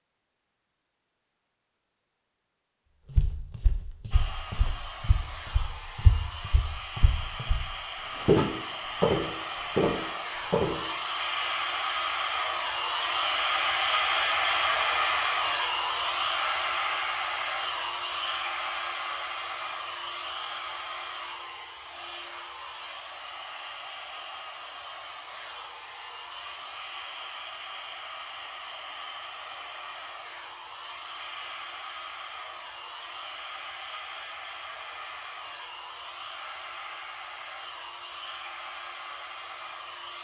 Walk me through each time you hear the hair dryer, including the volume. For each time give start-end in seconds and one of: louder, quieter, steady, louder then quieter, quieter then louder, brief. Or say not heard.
4.1-40.1 louder then quieter.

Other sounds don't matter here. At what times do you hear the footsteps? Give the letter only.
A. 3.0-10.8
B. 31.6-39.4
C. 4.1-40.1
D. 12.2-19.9
A.